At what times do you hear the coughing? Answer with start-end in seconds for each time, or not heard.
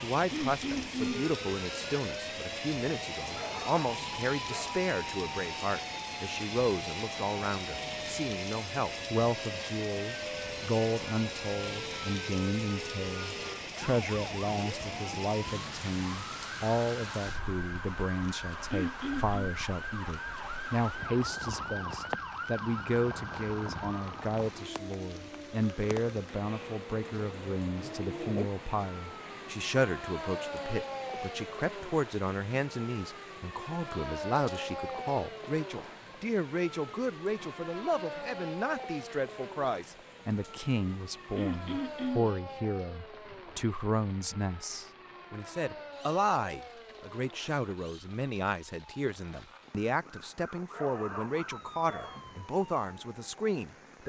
0.3-1.3, 18.7-19.5, 41.4-42.3.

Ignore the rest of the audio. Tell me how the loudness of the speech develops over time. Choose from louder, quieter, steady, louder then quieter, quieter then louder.
steady.